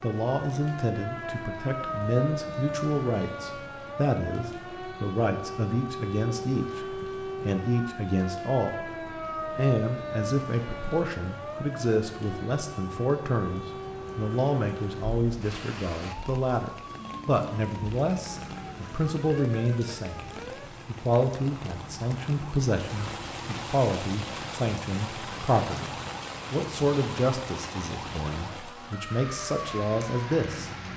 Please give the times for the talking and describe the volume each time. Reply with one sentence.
The talking can be heard from 0.0 to 30.7 s, at a steady volume.